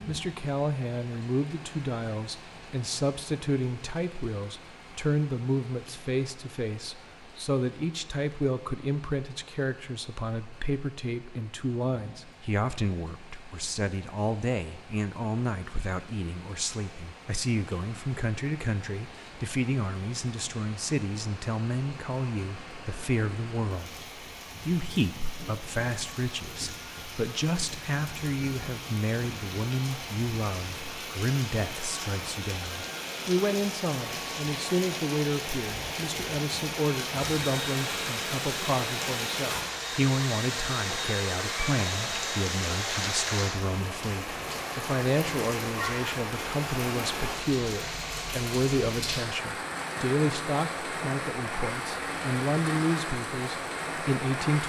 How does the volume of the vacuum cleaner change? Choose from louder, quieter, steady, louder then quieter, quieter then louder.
steady.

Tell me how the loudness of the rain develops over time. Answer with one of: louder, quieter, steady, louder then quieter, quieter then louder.
louder.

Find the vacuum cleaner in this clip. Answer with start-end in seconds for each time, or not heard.
37.1-43.2.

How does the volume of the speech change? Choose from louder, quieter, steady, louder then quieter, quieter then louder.
steady.